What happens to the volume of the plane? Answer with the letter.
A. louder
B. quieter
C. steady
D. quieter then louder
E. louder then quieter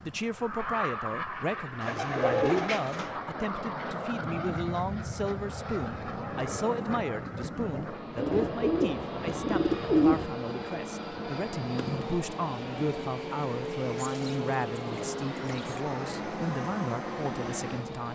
C.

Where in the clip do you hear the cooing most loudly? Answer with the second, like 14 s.
10 s.